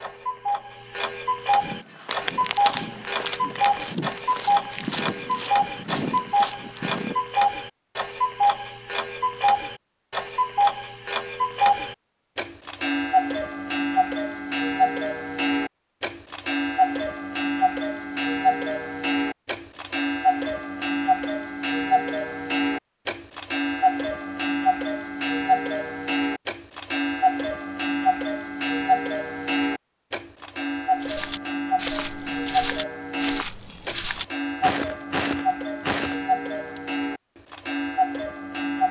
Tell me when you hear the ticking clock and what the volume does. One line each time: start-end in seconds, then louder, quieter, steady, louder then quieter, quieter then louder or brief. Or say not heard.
0.0-38.8 steady.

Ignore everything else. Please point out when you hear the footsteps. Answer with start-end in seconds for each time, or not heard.
1.5-7.2, 31.0-36.8.